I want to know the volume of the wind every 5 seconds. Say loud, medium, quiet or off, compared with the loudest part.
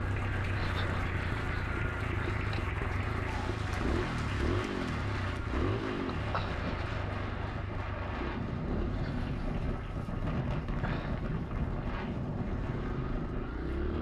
medium, loud, loud.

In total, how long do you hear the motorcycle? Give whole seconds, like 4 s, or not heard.
14 s.